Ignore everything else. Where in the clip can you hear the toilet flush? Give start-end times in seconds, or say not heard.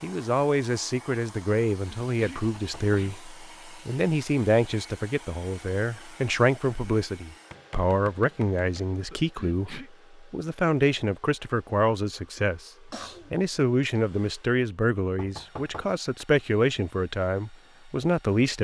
not heard.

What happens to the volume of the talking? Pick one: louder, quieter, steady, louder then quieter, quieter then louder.
steady.